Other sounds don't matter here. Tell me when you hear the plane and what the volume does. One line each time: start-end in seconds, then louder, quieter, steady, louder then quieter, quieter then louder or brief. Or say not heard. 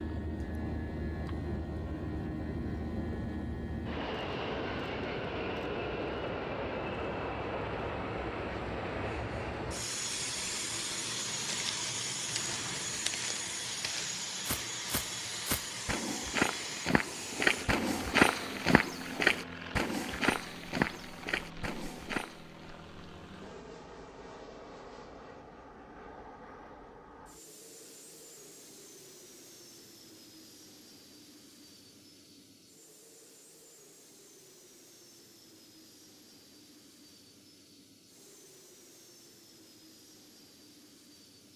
0.0-41.5 quieter.